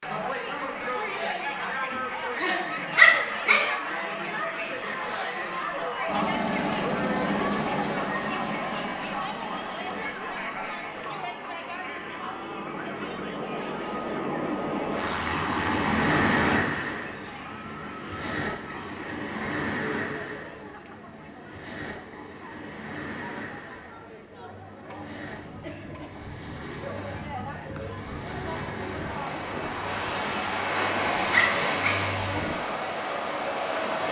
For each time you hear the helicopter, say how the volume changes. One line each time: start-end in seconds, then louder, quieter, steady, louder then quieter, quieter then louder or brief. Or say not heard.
6.0-16.6 quieter then louder.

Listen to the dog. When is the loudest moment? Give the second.
3 s.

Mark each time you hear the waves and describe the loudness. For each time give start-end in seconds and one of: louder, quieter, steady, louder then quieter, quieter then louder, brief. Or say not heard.
14.9-34.0 quieter then louder.